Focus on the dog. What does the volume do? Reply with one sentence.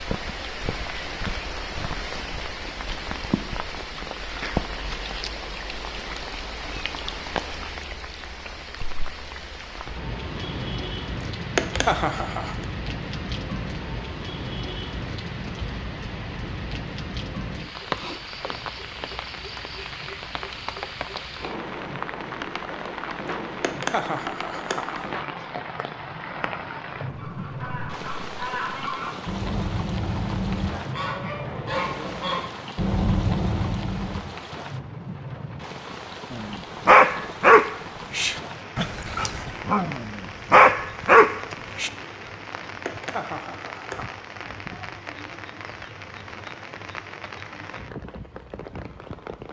The loudness of the dog goes down, then up.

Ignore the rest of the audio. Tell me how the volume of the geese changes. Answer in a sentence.
The loudness of the geese goes up.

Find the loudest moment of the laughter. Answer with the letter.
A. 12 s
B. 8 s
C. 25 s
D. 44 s
A.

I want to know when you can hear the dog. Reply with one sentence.
You can hear the dog from 36.3 to 41.9 s.